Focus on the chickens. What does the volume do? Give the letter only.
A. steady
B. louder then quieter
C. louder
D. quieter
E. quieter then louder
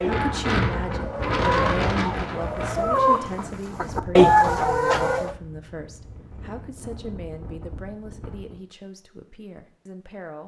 C.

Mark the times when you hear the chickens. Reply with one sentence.
The chickens can be heard from 0.0 to 5.3 s.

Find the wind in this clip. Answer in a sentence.
You can hear the wind from 0.0 to 8.6 s.